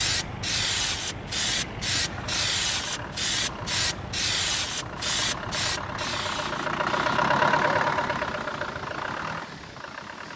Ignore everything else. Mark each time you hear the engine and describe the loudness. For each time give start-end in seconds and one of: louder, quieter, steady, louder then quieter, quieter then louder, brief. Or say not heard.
0.0-10.3 louder then quieter.